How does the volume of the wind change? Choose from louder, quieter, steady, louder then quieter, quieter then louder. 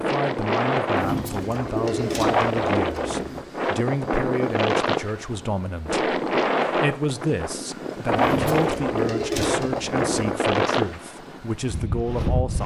steady.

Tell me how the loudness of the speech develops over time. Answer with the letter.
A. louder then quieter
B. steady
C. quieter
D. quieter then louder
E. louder
B.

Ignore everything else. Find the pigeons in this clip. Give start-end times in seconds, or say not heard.
0.9-3.4, 8.2-10.1.